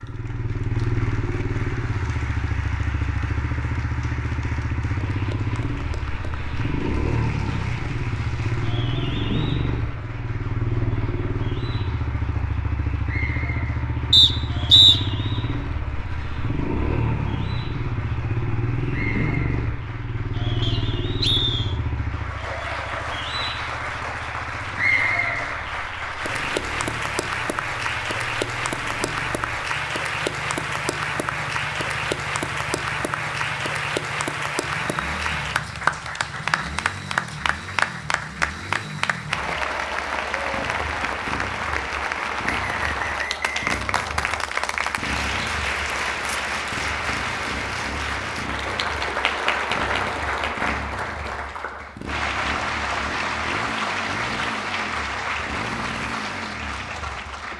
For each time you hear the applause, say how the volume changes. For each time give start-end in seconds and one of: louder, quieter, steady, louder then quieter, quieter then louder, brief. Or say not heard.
0.0-57.5 louder.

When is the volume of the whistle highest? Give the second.
15 s.